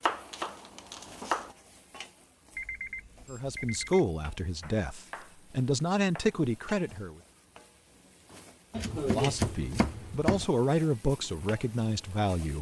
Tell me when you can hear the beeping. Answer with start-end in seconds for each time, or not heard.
2.5-4.1.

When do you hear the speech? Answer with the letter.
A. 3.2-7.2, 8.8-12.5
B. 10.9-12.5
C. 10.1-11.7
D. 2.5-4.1
A.